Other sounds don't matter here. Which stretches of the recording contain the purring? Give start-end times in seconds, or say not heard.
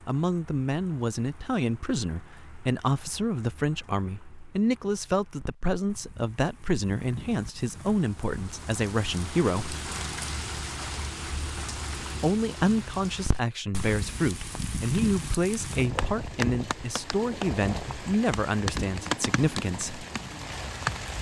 not heard.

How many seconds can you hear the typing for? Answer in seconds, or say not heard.
not heard.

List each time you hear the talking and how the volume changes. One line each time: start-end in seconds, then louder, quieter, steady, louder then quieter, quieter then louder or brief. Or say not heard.
0.1-9.8 steady
12.2-20.1 steady.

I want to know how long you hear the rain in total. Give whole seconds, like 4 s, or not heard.
21 s.